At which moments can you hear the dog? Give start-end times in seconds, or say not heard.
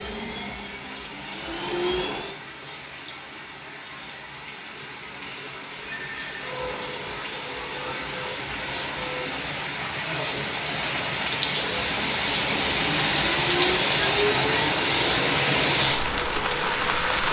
not heard.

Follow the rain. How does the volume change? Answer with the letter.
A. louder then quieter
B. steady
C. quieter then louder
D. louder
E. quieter
D.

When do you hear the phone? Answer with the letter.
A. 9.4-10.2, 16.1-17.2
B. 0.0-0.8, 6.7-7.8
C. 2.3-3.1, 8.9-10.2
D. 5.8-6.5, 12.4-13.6
D.